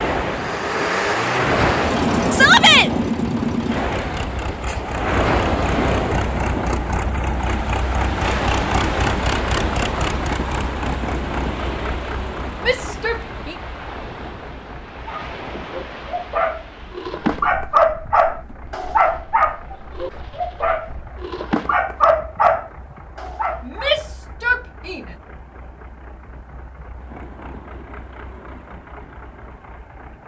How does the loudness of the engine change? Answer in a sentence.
The loudness of the engine goes down.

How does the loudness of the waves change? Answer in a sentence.
The volume of the waves goes down.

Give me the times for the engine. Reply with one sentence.
You can hear the engine from 0.2 to 30.2 s.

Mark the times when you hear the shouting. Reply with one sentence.
The shouting can be heard from 2.3 to 2.9 s, from 12.7 to 13.6 s and from 23.6 to 25.1 s.